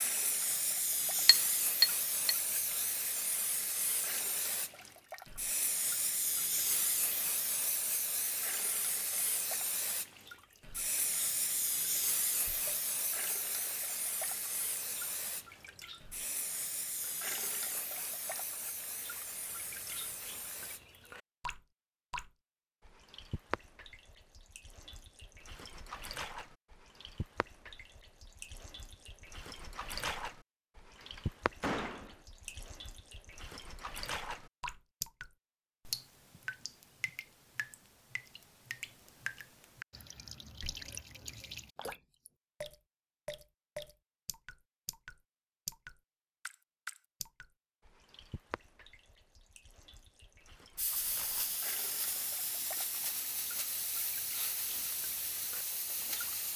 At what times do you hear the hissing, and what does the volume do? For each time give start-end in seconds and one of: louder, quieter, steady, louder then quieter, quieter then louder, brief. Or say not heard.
0.0-20.9 quieter
50.8-56.5 steady.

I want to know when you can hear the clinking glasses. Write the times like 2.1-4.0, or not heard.
1.2-2.4.